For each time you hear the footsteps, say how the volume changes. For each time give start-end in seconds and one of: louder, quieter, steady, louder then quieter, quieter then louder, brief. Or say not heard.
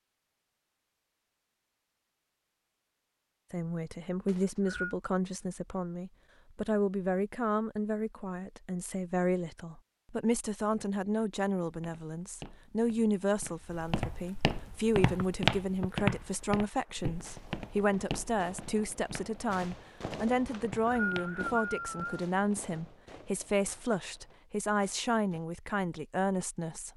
11.6-21.4 louder then quieter.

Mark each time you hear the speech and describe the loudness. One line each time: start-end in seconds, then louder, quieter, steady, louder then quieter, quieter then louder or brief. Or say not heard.
3.5-26.9 steady.